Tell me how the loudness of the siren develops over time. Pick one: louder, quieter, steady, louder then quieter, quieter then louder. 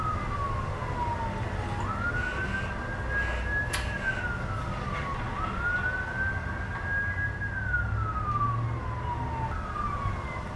steady.